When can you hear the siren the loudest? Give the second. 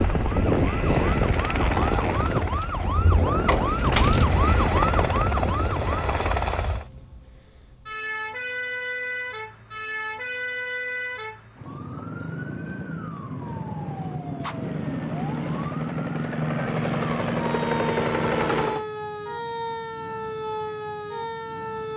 4 s.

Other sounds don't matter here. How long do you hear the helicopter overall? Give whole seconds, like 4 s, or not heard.
11 s.